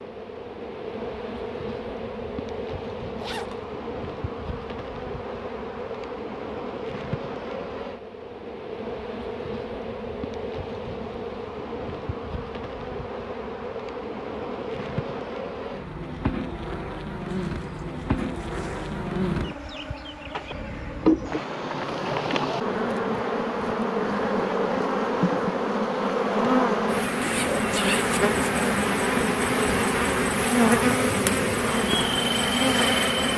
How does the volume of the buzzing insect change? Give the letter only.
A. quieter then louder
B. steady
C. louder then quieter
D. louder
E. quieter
D.